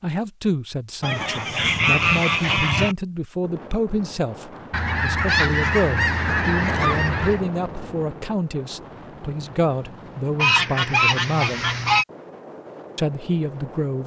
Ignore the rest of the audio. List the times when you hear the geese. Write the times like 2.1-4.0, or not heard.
1.0-3.0, 4.7-7.4, 10.3-12.1.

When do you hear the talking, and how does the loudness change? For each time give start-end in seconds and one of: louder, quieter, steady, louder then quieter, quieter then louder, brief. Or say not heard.
0.0-11.7 steady
12.9-14.0 brief.